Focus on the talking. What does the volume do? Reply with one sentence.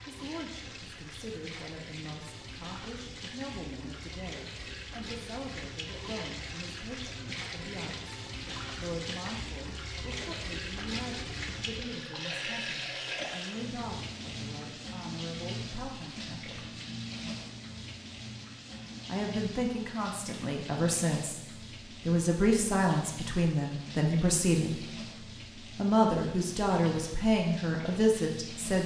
The volume of the talking goes up.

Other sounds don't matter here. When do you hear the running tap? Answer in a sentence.
You can hear the running tap from 0.0 to 28.8 s.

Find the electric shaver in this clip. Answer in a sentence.
You can't hear the electric shaver here.